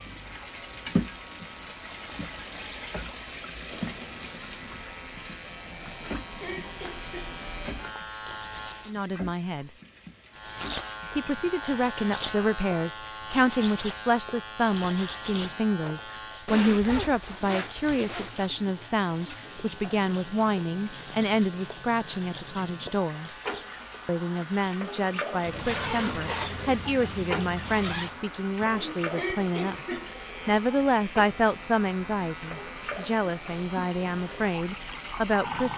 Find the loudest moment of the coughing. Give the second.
29 s.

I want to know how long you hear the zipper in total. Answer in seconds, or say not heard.
6 s.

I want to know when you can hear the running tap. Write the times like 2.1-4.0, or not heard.
0.0-11.5, 17.2-35.7.